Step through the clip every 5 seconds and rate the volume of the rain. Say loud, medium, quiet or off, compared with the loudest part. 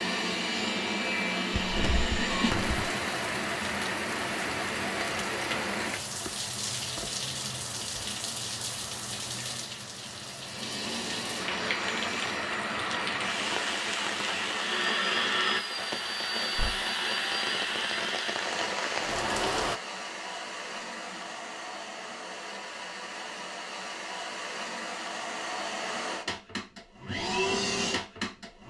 loud, loud, loud, loud, off, off.